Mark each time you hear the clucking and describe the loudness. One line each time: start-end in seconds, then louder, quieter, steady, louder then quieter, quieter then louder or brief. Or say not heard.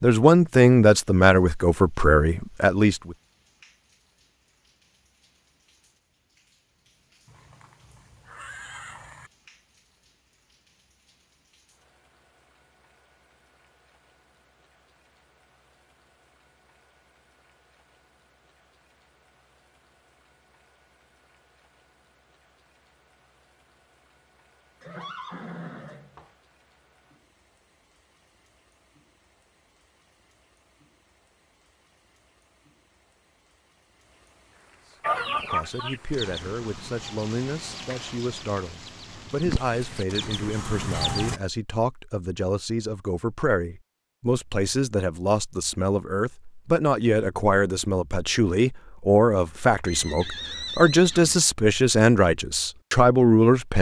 35.0-41.4 quieter then louder.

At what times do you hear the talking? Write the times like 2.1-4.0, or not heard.
0.0-3.1, 35.4-53.7.